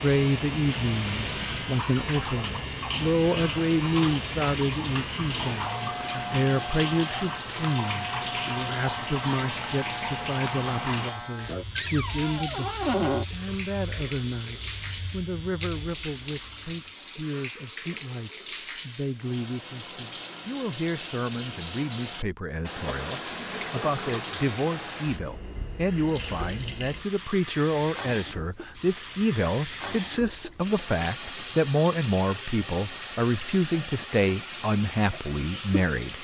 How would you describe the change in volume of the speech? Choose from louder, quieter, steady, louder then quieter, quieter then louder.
quieter then louder.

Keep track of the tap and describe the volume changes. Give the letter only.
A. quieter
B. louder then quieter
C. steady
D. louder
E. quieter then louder
C.